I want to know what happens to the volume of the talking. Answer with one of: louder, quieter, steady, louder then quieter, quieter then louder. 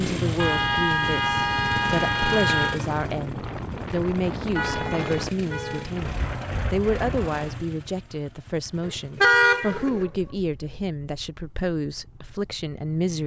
steady.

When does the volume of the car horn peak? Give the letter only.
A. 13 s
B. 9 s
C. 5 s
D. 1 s
B.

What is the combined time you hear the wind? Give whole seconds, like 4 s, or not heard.
7 s.